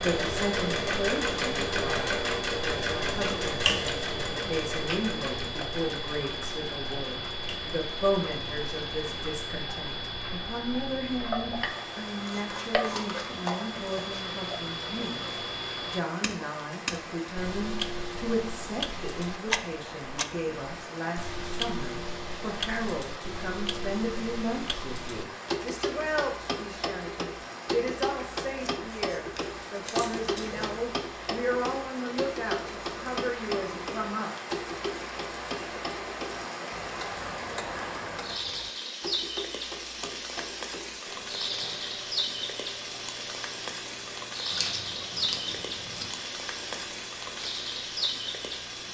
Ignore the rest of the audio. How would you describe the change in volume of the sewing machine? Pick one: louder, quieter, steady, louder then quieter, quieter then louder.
quieter.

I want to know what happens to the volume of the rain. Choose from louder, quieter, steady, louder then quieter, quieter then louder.
louder.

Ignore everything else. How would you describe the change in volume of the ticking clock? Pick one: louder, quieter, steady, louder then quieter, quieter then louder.
quieter.